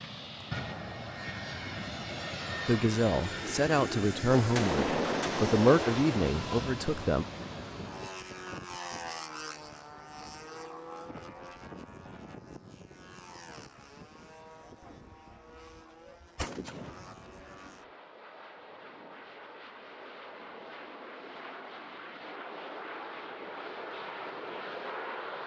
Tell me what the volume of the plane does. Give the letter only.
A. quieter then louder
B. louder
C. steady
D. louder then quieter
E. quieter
A.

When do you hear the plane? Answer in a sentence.
The plane can be heard from 0.0 to 25.4 s.